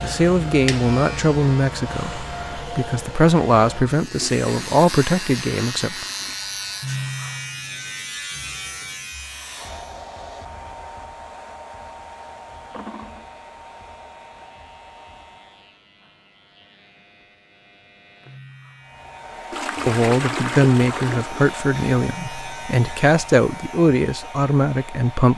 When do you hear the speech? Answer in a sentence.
You can hear the speech from 0.0 to 6.0 s and from 19.9 to 25.3 s.